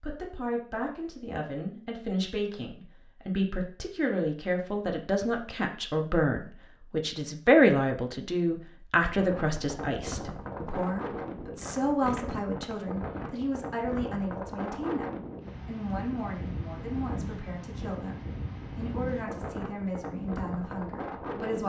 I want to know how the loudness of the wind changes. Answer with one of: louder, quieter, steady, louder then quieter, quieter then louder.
steady.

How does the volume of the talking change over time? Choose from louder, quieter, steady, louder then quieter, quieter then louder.
louder then quieter.